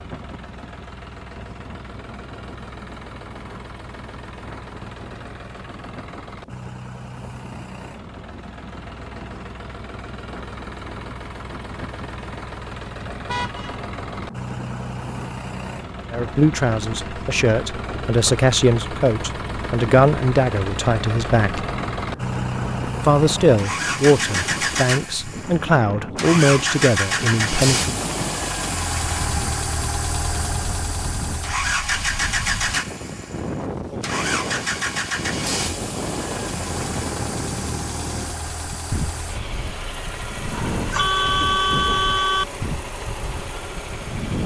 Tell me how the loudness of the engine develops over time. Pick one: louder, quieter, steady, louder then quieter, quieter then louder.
louder then quieter.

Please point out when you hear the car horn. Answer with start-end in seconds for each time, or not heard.
13.2-13.8, 40.5-42.5.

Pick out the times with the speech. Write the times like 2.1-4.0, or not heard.
16.1-21.6, 23.0-27.9.